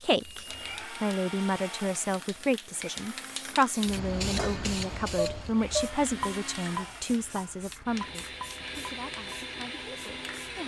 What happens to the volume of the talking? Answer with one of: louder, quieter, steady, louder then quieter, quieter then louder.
quieter.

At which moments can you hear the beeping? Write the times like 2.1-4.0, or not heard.
0.2-0.8.